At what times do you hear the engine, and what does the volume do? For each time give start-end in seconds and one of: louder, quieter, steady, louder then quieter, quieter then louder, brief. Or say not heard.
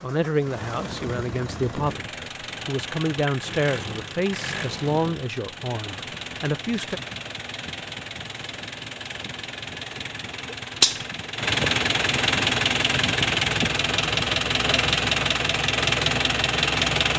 0.0-17.1 louder.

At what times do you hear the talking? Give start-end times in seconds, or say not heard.
0.0-7.0.